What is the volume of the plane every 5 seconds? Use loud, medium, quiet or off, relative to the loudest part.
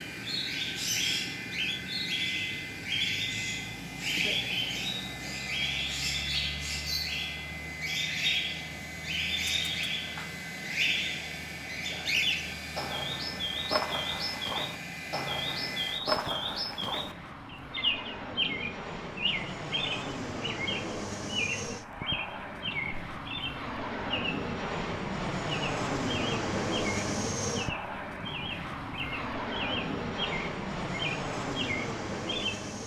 medium, medium, medium, medium, loud, loud, loud.